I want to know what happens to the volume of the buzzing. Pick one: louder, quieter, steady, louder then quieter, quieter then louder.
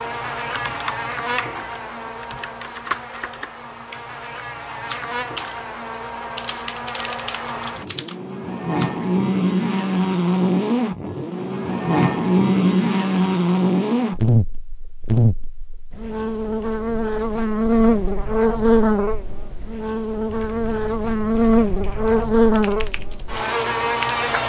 louder.